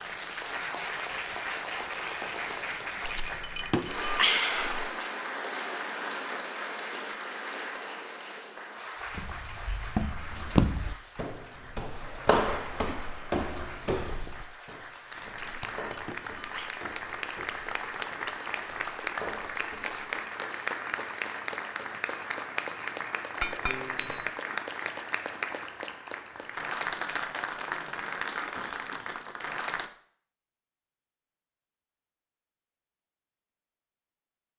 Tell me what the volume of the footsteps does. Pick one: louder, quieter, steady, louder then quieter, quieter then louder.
quieter.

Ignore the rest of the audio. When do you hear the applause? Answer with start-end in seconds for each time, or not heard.
0.0-29.9.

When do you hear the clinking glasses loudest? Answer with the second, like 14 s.
4 s.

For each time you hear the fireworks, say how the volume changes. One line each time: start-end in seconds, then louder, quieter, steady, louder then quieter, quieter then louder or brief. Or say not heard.
not heard.